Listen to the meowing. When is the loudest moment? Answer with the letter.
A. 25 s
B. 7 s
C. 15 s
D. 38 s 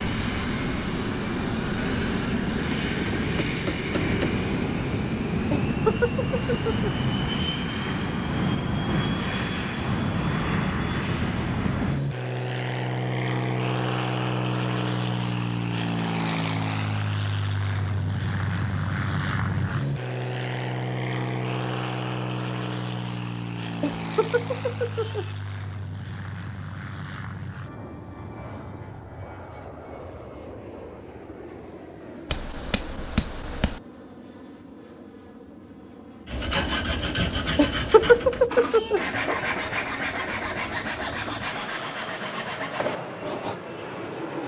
D.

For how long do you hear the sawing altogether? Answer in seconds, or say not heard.
7 s.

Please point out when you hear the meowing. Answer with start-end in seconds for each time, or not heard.
5.5-6.9, 23.8-25.3, 37.5-39.0.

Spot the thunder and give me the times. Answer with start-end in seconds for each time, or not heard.
not heard.